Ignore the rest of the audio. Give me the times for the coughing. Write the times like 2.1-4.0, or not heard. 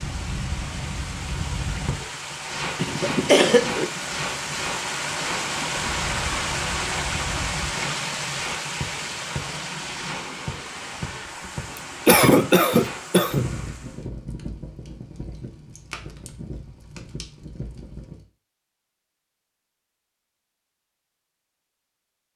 2.8-3.9, 11.8-13.4.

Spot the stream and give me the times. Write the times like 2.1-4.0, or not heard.
0.0-14.1.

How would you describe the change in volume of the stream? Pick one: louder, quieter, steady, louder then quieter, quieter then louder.
louder then quieter.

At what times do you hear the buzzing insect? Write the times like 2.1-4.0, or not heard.
not heard.